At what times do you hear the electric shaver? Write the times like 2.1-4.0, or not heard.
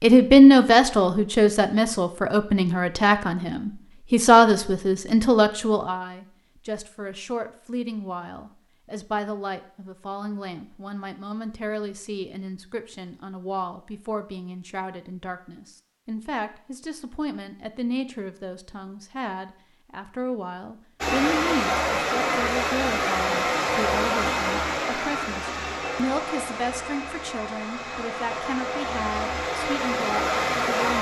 not heard.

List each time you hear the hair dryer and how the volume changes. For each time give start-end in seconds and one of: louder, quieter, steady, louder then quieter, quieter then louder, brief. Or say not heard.
21.0-30.9 quieter then louder.